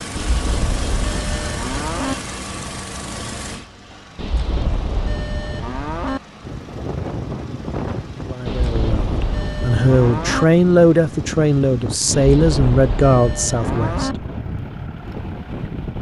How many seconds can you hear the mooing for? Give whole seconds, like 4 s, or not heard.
8 s.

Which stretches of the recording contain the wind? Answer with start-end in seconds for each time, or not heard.
6.4-15.9.